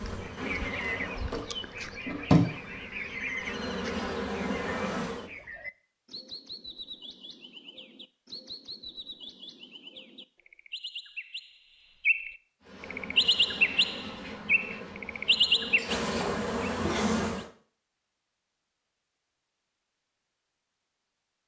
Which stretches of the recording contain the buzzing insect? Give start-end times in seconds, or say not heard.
0.0-5.3, 12.6-17.5.